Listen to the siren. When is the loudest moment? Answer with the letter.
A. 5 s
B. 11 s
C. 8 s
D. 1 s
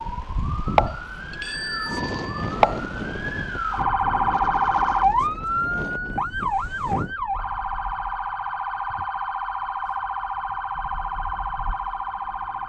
A.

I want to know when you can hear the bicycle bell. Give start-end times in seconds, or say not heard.
0.8-2.6.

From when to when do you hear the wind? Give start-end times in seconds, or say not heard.
0.0-7.2.